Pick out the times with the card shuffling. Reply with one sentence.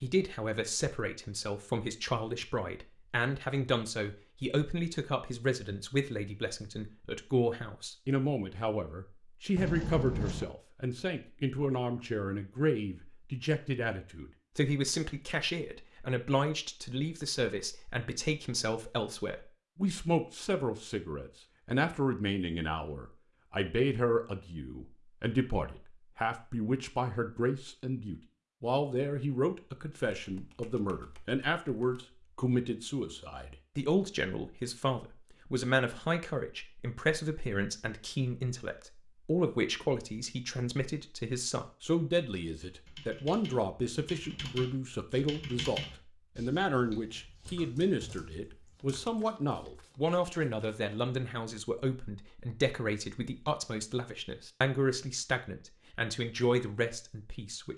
The card shuffling can be heard from 9.6 to 10.5 s, from 30.1 to 32.0 s and from 48.8 to 50.8 s.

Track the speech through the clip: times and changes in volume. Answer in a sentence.
The speech can be heard from 0.0 to 57.7 s, at a steady volume.